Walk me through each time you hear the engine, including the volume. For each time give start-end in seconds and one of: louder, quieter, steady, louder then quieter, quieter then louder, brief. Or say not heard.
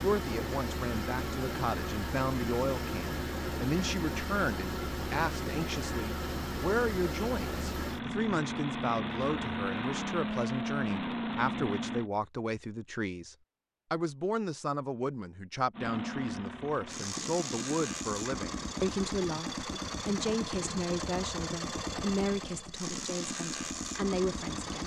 0.0-12.1 steady
15.7-24.8 steady.